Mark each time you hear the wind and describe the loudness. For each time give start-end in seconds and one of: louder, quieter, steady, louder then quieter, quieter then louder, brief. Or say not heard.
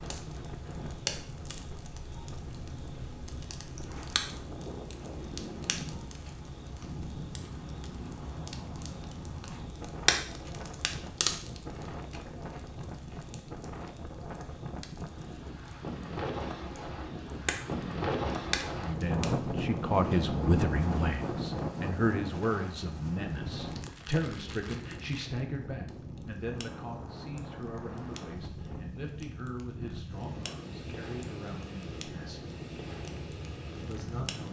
0.0-34.4 louder then quieter.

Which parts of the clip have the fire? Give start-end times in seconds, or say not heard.
0.0-34.4.